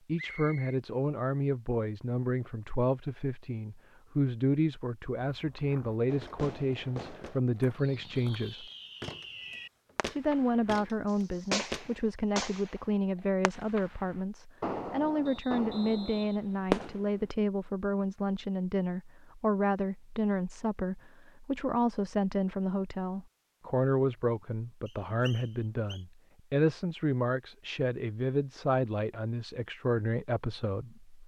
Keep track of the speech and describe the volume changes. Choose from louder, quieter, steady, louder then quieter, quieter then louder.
steady.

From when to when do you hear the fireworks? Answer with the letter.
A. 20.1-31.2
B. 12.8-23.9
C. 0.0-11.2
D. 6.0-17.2
D.